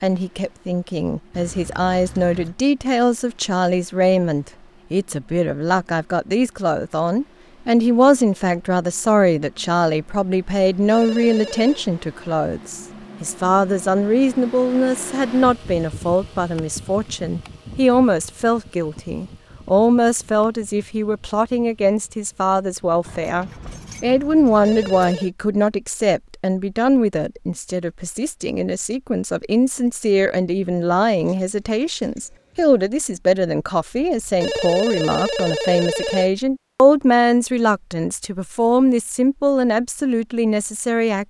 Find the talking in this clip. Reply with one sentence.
The talking can be heard from 0.0 to 41.2 s.